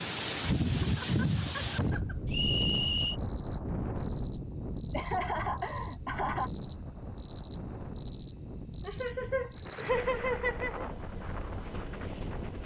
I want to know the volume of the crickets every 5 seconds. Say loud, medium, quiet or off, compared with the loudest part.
medium, loud, medium.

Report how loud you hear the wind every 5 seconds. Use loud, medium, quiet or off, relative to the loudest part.
loud, medium, medium.